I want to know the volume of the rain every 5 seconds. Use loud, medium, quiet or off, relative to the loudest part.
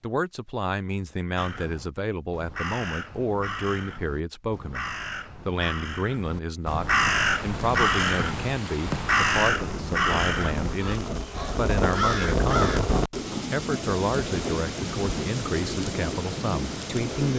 off, medium, loud, loud.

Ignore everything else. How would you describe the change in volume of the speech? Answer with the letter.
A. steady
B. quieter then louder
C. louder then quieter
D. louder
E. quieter
A.